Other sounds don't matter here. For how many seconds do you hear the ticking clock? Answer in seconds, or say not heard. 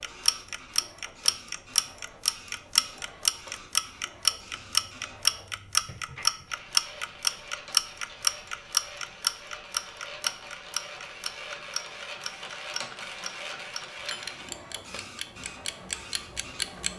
17 s.